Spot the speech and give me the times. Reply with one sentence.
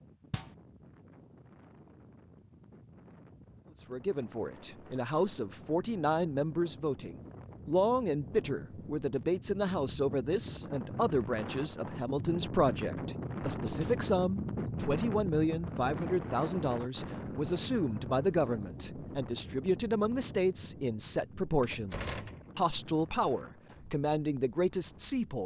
You can hear the speech from 3.9 to 25.4 s.